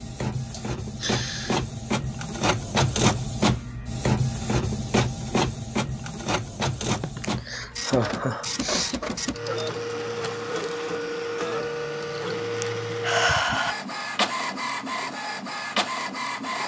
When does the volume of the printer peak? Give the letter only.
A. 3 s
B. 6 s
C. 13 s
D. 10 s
A.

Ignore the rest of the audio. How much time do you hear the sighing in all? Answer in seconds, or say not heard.
4 s.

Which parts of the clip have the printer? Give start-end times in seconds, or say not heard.
0.0-16.6.